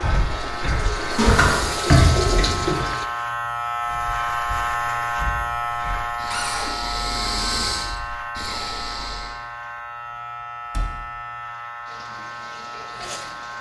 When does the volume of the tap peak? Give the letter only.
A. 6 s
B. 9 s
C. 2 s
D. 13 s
C.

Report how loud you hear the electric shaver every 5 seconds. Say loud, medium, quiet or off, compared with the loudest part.
loud, loud, medium.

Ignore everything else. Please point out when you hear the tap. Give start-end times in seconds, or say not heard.
0.0-3.0, 11.8-13.5.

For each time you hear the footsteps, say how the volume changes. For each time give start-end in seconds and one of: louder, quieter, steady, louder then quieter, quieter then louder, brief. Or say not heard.
not heard.